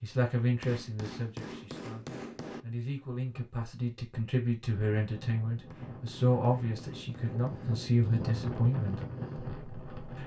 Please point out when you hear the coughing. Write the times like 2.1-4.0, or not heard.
not heard.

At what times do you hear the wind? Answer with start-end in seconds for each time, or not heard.
4.7-10.2.